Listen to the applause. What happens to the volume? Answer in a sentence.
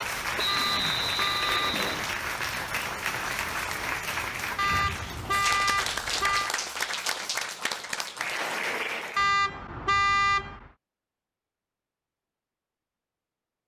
The volume of the applause stays about the same.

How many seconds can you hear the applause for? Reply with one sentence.
The applause can be heard for 9 seconds in total.